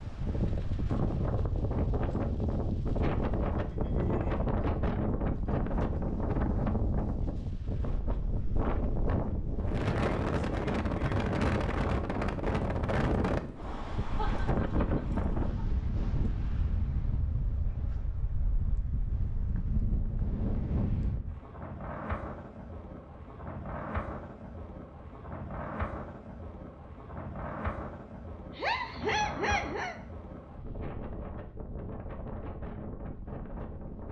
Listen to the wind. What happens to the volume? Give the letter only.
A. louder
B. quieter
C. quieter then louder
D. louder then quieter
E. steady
B.